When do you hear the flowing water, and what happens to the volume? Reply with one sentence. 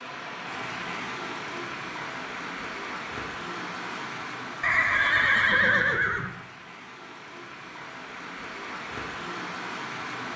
The flowing water can be heard from 0.0 to 10.3 s, getting quieter then louder.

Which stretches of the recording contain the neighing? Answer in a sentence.
The neighing can be heard from 4.6 to 6.3 s.